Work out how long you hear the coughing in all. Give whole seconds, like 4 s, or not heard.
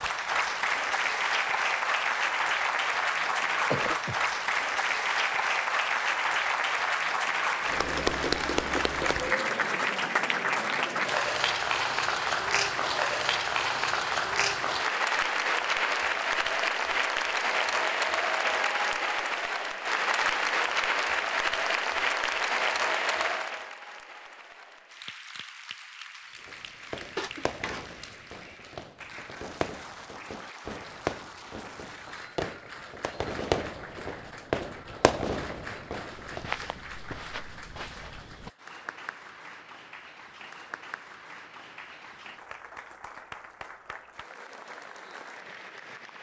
2 s.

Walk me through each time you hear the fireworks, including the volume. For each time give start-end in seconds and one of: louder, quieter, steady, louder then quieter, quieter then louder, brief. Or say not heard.
26.4-36.5 louder.